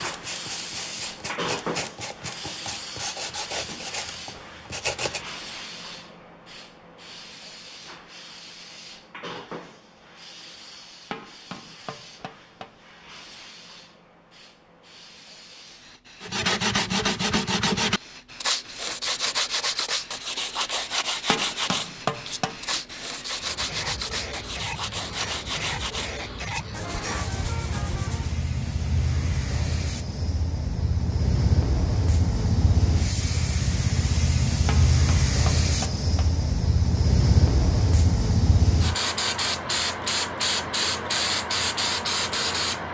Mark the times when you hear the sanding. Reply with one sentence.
The sanding can be heard from 0.0 to 5.3 s and from 16.2 to 28.4 s.